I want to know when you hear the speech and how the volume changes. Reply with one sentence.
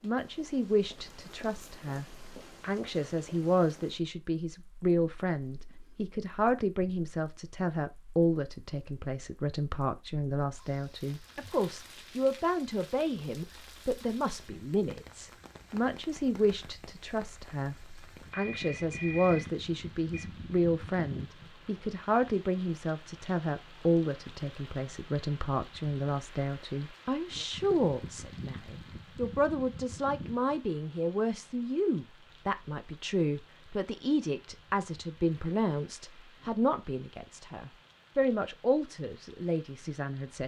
The speech can be heard from 0.0 to 40.4 s, at a steady volume.